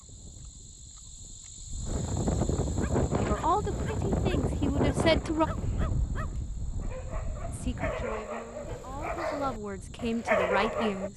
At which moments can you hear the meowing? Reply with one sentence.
You can't hear the meowing here.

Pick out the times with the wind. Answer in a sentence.
The wind can be heard from 0.0 to 11.1 s.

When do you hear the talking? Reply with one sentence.
The talking can be heard from 3.2 to 5.5 s and from 7.5 to 11.1 s.